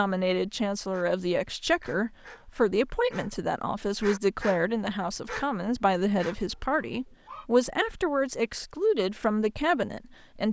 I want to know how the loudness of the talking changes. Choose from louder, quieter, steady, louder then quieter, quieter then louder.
steady.